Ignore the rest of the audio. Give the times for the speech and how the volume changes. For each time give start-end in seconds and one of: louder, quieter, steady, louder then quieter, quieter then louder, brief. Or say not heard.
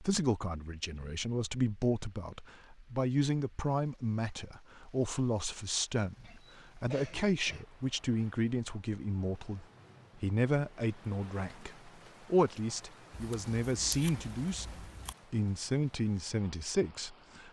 0.0-17.4 steady.